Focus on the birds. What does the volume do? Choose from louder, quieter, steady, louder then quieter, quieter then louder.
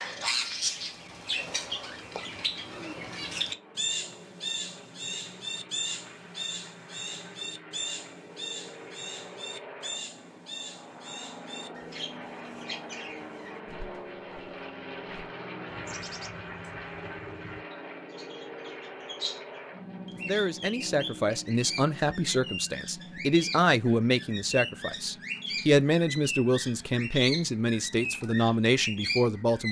quieter then louder.